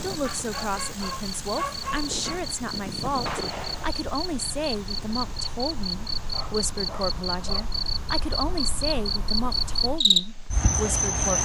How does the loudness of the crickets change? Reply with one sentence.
The volume of the crickets goes up.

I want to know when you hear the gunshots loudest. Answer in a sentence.
The loudest moment of the gunshots is at 3 seconds.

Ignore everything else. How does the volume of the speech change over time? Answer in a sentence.
The volume of the speech stays about the same.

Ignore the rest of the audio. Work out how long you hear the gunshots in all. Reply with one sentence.
You can hear the gunshots for 2 seconds altogether.